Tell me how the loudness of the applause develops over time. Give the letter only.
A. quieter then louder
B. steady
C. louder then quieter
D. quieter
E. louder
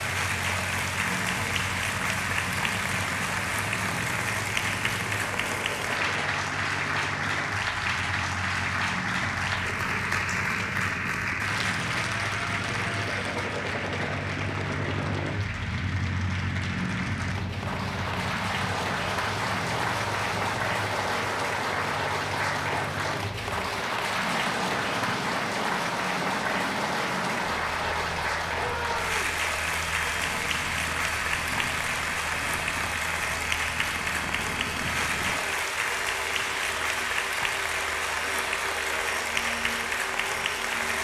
B.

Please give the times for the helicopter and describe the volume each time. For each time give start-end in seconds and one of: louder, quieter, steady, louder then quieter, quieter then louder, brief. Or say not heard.
0.0-40.9 steady.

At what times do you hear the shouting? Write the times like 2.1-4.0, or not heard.
28.6-29.4.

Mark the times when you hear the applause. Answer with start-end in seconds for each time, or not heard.
0.0-40.9.